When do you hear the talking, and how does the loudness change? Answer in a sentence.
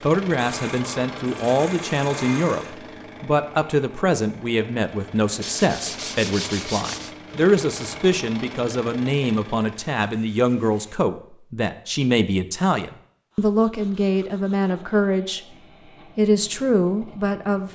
You can hear the talking from 0.0 to 15.6 s, at a steady volume; and briefly from 16.1 to 17.6 s.